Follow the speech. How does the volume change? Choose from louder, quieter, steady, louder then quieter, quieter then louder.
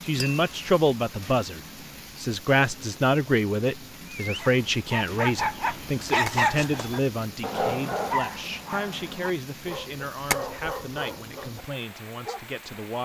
quieter.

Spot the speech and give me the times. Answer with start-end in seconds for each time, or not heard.
0.0-13.0.